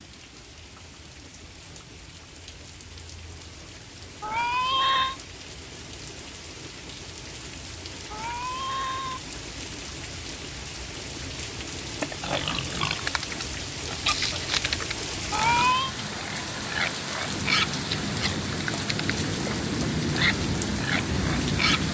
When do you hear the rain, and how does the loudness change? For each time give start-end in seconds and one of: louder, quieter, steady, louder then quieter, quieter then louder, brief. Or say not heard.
0.0-21.8 louder.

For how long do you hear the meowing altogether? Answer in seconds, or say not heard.
3 s.